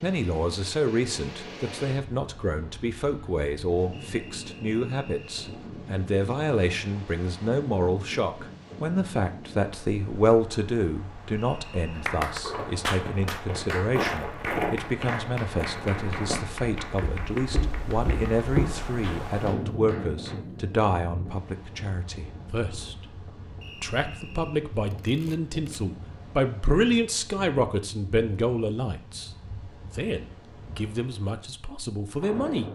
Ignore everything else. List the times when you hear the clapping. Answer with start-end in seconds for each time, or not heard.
11.9-20.4.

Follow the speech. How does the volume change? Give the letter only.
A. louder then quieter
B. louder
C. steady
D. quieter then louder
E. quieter
C.